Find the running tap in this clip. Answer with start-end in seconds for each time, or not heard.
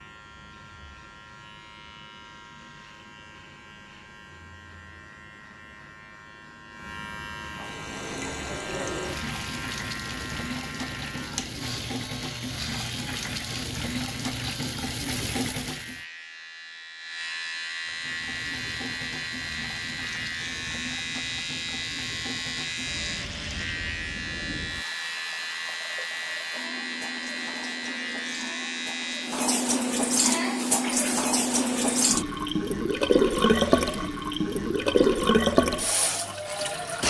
7.5-16.0, 17.9-37.0.